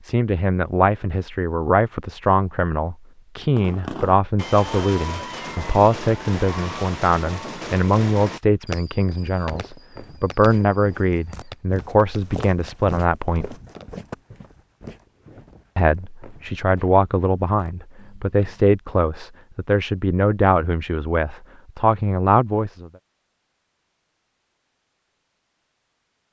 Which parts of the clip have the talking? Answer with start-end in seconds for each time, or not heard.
0.0-13.6, 15.8-22.9.